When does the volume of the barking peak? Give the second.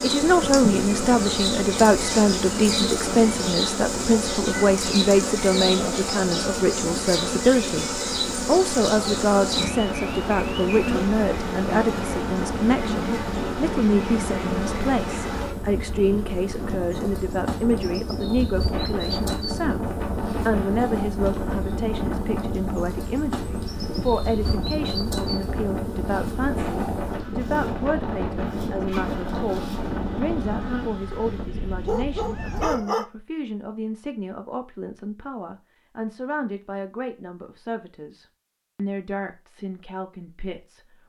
33 s.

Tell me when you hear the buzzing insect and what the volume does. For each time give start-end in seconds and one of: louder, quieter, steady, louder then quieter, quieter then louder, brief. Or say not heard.
0.0-31.4 quieter.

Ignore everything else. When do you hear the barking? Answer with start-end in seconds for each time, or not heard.
31.1-33.0.